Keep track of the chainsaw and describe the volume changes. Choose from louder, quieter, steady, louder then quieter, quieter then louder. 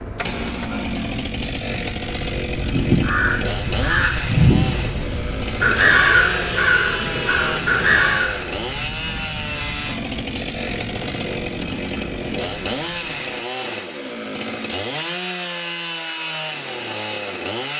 steady.